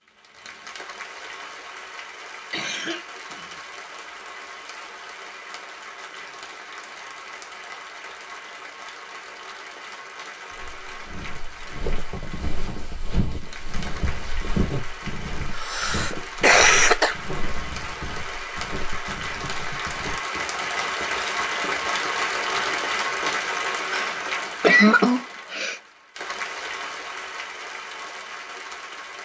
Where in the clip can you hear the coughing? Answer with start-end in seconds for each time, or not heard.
2.5-3.8, 15.5-17.1, 23.9-25.8.